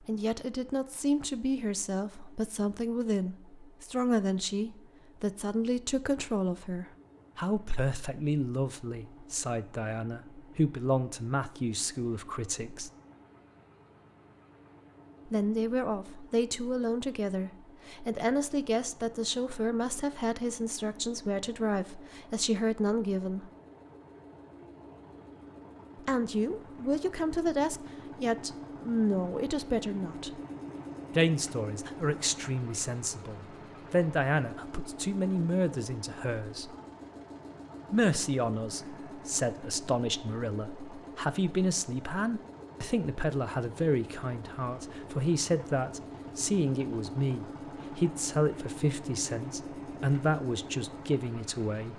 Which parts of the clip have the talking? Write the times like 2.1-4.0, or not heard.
0.1-12.9, 15.2-23.5, 25.9-30.4, 31.1-36.7, 37.9-51.9.